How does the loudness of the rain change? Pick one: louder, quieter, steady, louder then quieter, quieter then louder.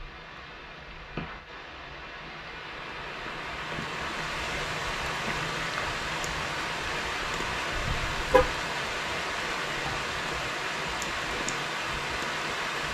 louder.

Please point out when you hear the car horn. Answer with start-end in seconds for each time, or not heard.
7.8-8.5.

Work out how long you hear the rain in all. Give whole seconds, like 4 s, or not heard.
13 s.